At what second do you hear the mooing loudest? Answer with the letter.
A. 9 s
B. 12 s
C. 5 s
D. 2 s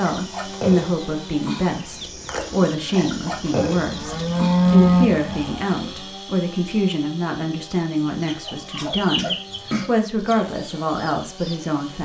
C.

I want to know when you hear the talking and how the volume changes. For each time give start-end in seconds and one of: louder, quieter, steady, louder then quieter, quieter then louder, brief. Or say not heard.
0.0-12.0 steady.